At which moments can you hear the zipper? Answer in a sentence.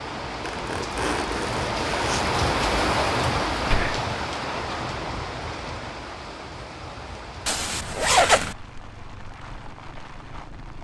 The zipper can be heard from 0.5 to 2.4 s and from 7.5 to 8.6 s.